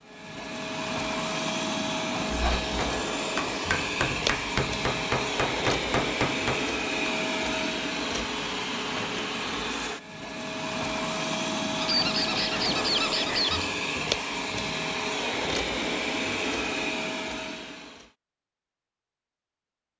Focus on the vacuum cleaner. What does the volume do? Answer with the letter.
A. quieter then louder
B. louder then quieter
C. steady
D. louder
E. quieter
C.